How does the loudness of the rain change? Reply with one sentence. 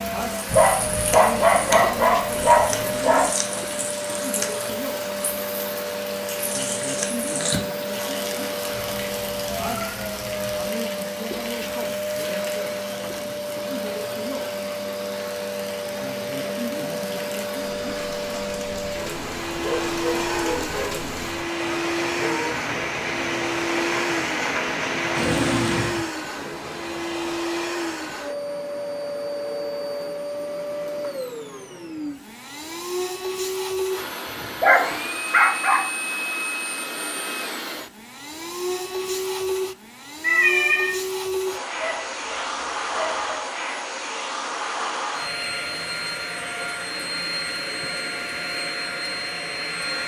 The loudness of the rain goes down, then up.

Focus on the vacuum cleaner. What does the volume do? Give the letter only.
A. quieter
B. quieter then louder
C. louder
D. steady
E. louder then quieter
D.